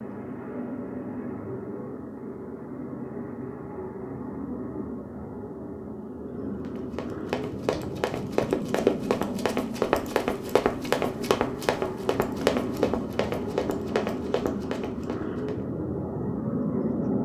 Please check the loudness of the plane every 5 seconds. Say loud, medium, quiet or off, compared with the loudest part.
medium, medium, loud, loud.